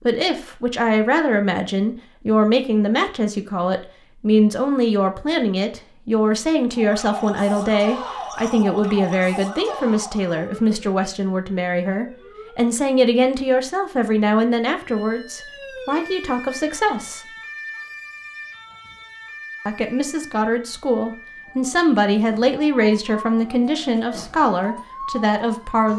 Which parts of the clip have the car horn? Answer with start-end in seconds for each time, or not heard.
not heard.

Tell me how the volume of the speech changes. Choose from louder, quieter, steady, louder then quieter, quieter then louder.
steady.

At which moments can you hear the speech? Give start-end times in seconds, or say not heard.
0.0-17.2, 19.6-25.9.